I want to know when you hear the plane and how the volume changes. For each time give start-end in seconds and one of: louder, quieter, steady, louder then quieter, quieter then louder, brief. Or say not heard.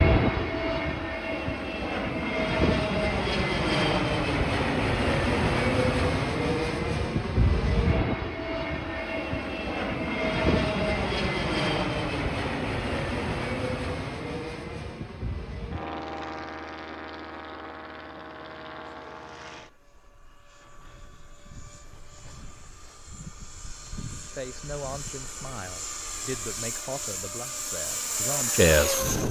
0.0-29.2 quieter then louder.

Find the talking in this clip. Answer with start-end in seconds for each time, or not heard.
24.2-29.0.